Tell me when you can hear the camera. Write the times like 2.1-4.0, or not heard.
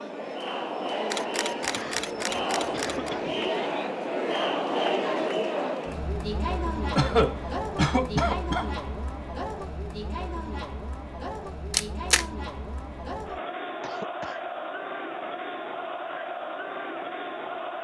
1.1-3.1, 11.7-12.2.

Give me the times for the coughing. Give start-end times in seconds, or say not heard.
1.6-3.5, 7.0-8.7, 13.8-14.4.